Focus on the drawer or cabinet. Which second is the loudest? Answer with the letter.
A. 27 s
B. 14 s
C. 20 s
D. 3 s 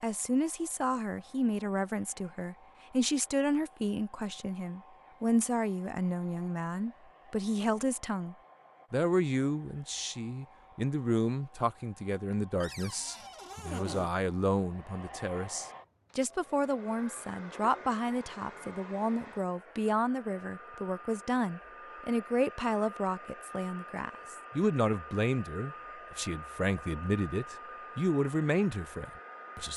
B.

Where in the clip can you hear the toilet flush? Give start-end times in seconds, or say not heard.
not heard.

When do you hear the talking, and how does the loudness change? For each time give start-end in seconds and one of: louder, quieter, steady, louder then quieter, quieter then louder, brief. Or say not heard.
0.0-29.7 steady.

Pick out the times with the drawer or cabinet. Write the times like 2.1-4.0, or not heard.
12.6-14.1.